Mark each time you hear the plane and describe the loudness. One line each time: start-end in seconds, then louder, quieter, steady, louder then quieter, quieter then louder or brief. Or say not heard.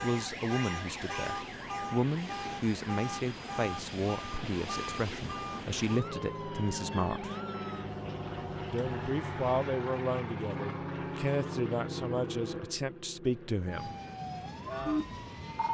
0.0-15.7 louder then quieter.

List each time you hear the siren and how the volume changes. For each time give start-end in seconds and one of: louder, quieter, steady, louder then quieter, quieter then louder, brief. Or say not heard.
0.0-9.7 quieter
13.7-15.7 brief.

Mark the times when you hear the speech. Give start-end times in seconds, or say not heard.
0.0-7.3, 8.7-13.9.